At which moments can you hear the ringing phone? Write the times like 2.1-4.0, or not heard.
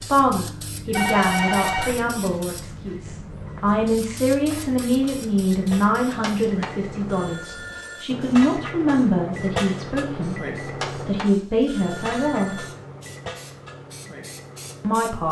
0.9-1.9, 6.2-8.1, 10.8-12.7.